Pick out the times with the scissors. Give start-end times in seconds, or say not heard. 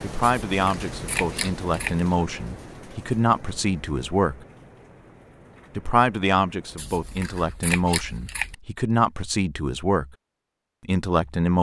0.2-2.0, 6.8-8.6.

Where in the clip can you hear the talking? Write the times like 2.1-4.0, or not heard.
0.0-4.4, 5.8-10.1, 10.8-11.5.